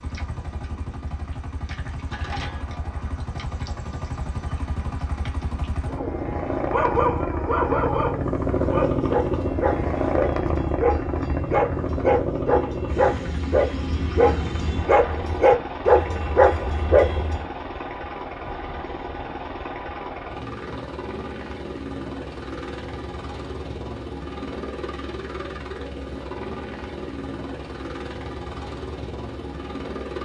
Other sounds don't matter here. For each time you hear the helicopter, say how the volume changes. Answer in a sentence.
The helicopter can be heard from 0.0 to 30.2 s, getting louder then quieter.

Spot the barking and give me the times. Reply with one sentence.
You can hear the barking from 5.9 to 17.4 s.